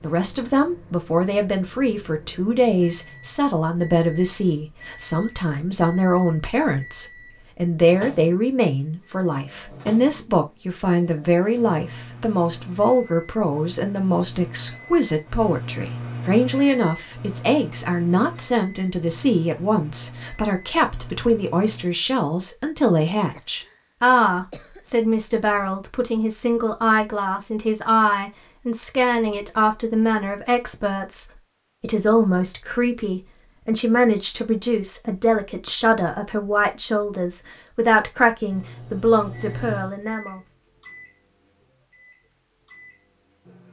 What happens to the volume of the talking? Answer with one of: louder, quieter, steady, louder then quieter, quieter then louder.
steady.